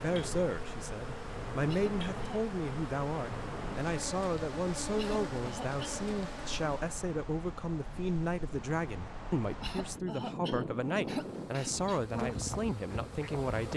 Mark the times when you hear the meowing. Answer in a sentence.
You can't hear the meowing here.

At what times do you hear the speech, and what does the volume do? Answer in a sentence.
The speech can be heard from 0.0 to 13.7 s, at a steady volume.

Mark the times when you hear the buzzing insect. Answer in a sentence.
You can hear the buzzing insect from 0.0 to 7.0 s and from 10.7 to 13.7 s.